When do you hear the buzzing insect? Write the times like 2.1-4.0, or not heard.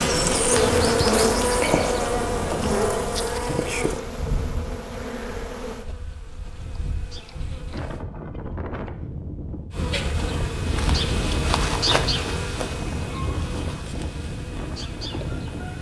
0.0-8.1, 9.7-15.7.